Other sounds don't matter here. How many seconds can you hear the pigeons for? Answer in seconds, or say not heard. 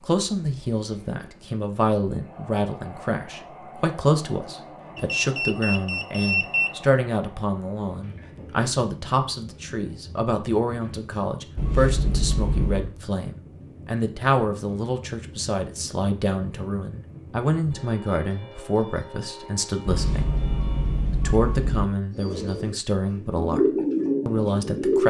3 s.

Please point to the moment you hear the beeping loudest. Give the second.
6 s.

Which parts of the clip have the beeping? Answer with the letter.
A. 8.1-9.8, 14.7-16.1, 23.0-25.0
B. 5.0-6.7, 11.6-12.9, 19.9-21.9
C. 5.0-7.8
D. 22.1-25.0
B.